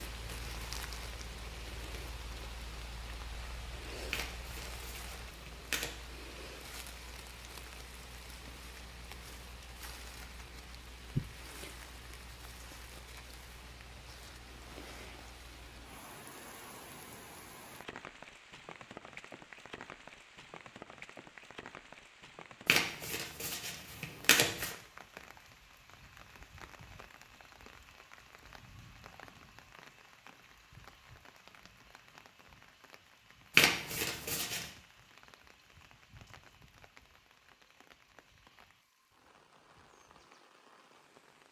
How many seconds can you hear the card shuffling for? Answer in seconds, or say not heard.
5 s.